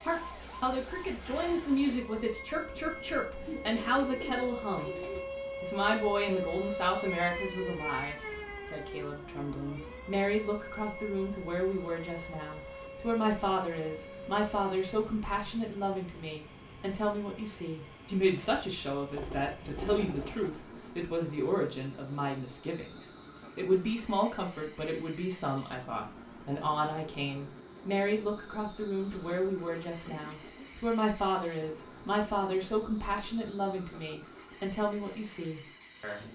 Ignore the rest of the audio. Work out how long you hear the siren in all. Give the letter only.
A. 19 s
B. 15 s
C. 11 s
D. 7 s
B.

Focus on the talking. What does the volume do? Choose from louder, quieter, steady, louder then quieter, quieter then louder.
steady.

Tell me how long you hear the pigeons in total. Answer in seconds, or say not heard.
5 s.